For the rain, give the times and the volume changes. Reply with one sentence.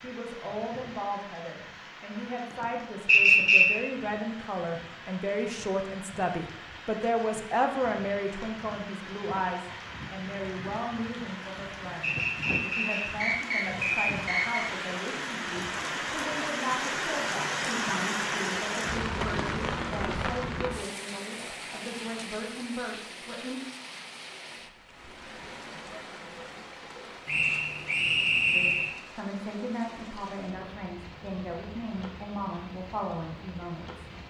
You can hear the rain from 0.0 to 34.2 s, getting louder then quieter.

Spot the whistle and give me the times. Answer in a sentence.
You can hear the whistle from 3.0 to 3.6 s, from 12.0 to 14.7 s and from 27.2 to 28.9 s.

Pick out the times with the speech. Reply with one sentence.
The speech can be heard from 0.0 to 23.6 s and from 28.5 to 34.0 s.